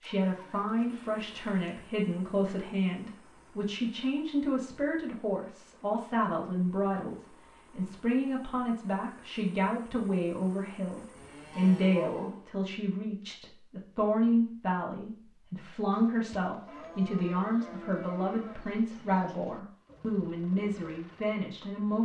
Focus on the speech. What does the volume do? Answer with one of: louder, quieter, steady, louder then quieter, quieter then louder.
steady.